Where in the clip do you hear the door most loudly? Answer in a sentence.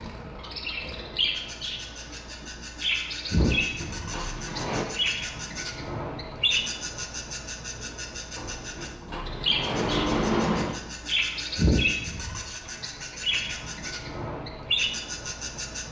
The loudest moment of the door is at 10 seconds.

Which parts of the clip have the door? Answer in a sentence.
You can hear the door from 3.4 to 4.8 s and from 8.3 to 10.8 s.